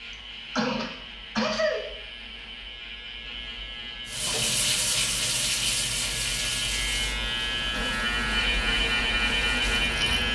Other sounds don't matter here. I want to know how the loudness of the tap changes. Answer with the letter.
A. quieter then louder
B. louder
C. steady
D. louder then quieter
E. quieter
E.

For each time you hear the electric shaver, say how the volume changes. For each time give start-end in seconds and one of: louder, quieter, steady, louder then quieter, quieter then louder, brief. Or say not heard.
0.0-10.3 louder.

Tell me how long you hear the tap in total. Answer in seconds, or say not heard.
6 s.